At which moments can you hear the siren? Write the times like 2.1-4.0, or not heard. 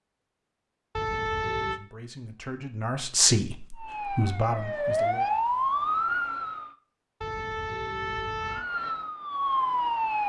3.8-6.8, 8.4-10.2.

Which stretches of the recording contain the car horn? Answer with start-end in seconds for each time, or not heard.
0.9-1.8, 7.2-8.7.